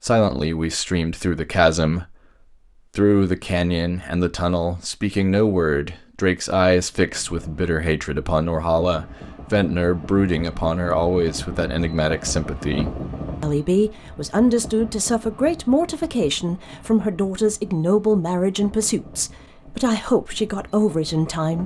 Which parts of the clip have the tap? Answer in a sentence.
The tap can't be heard in this clip.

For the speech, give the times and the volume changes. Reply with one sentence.
You can hear the speech briefly from 0.0 to 2.1 s; and from 3.0 to 21.6 s, at a steady volume.